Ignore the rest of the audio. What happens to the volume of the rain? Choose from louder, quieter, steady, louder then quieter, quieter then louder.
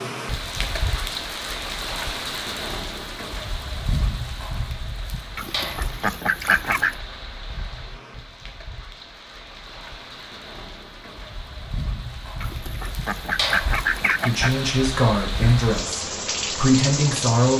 quieter then louder.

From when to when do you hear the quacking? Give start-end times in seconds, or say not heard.
5.3-7.0, 12.4-14.6.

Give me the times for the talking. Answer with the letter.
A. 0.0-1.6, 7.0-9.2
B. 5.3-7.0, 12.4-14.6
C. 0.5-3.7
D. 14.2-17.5
D.